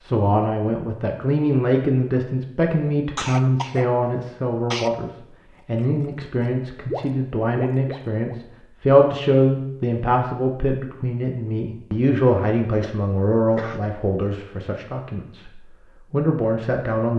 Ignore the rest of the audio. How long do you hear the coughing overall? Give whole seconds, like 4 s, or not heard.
3 s.